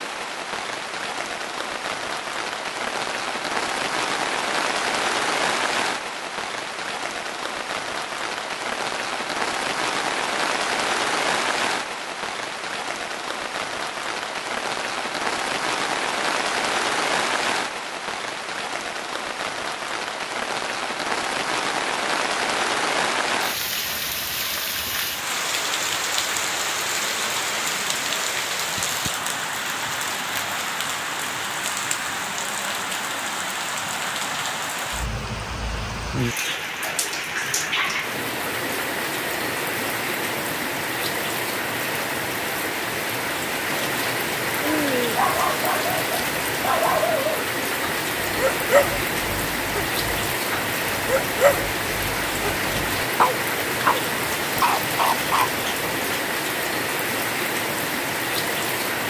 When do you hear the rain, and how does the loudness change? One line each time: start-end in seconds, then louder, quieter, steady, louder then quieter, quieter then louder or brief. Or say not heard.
0.0-59.0 steady.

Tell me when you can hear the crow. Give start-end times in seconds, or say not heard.
not heard.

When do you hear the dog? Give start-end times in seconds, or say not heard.
44.6-56.2.